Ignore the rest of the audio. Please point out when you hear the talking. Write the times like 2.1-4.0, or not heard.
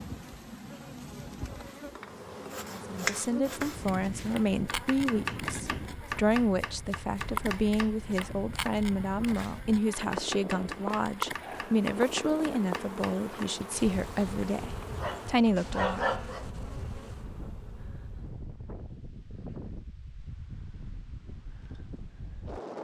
2.7-16.1.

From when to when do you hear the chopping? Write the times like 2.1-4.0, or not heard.
1.6-13.5.